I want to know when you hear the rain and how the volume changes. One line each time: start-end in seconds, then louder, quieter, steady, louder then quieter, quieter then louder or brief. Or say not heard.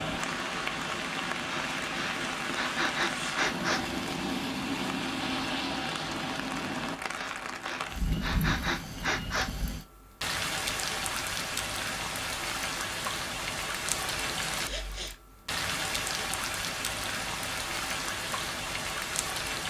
0.0-19.6 steady.